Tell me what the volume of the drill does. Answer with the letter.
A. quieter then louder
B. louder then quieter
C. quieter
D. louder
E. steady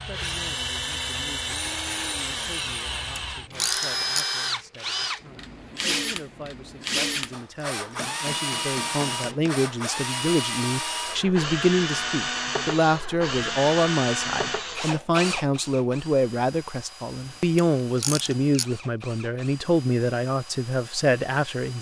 C.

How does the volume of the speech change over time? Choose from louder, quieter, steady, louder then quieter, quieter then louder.
louder.